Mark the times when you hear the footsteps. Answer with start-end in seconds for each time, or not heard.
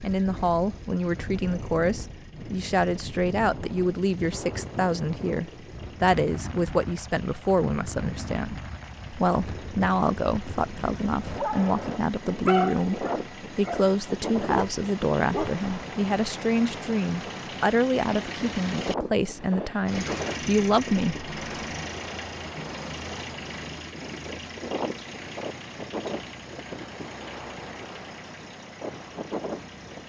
not heard.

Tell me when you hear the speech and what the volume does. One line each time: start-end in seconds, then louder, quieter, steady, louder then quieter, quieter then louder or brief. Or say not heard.
0.0-21.3 steady.